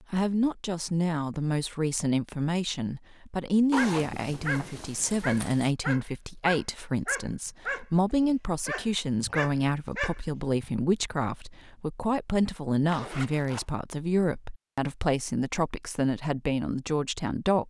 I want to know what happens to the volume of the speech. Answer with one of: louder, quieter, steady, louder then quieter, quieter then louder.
steady.